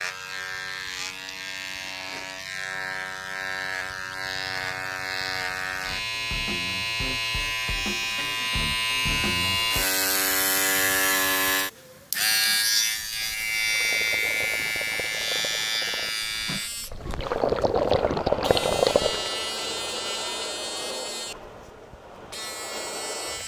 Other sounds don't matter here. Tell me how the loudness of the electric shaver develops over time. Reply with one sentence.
The volume of the electric shaver goes up, then down.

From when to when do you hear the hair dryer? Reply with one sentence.
The hair dryer can be heard from 17.9 to 23.4 s.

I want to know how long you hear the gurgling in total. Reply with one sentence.
You can hear the gurgling for 6 seconds altogether.